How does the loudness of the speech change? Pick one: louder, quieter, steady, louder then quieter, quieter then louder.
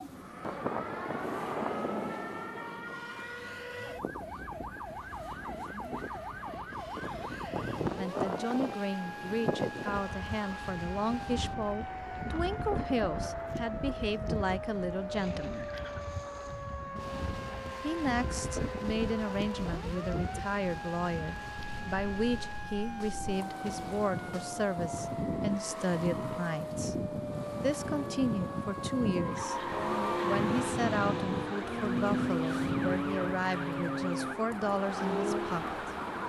steady.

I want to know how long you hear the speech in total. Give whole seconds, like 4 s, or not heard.
26 s.